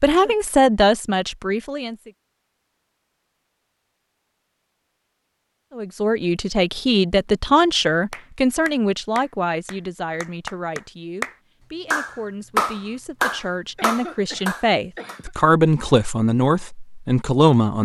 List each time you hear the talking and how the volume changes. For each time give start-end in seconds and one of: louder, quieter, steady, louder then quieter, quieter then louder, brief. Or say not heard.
0.0-2.1 brief
5.8-17.8 quieter then louder.